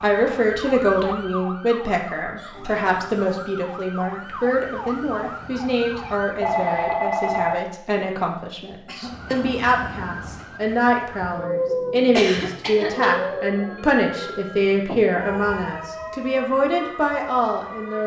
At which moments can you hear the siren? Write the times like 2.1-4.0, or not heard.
0.0-6.5, 9.1-18.0.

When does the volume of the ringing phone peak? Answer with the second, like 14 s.
7 s.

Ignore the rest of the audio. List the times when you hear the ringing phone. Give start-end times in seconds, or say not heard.
2.5-3.6, 6.4-7.6, 13.4-14.8.